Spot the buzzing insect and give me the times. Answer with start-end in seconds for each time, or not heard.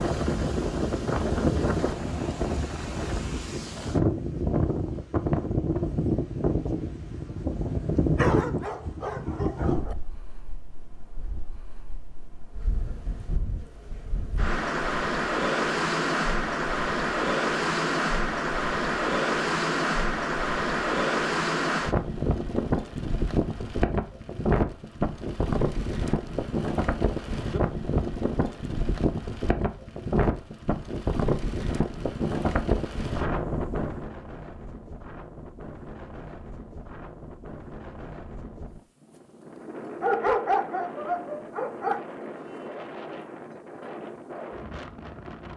not heard.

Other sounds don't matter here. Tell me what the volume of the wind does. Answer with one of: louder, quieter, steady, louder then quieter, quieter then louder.
quieter.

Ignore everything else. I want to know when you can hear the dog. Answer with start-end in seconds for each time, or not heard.
8.2-9.9, 40.0-42.0.